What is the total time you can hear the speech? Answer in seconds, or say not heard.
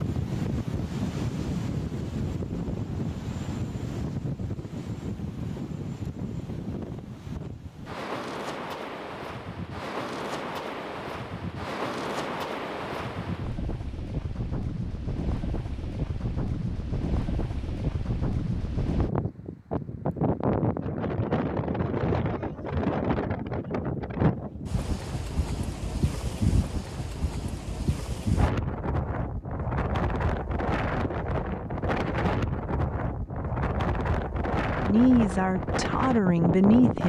2 s.